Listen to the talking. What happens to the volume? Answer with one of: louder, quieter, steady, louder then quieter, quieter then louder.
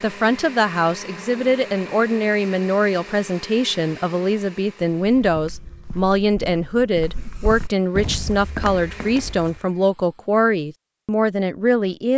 steady.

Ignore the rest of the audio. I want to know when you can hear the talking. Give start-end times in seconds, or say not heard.
0.0-12.1.